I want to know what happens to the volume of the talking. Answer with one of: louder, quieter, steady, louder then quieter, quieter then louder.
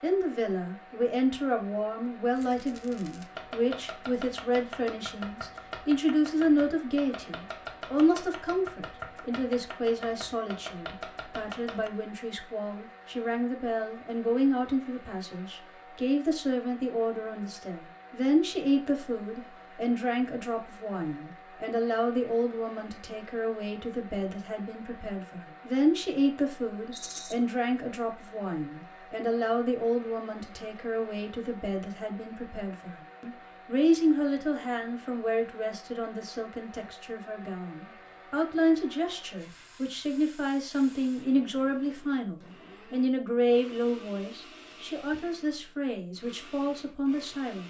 steady.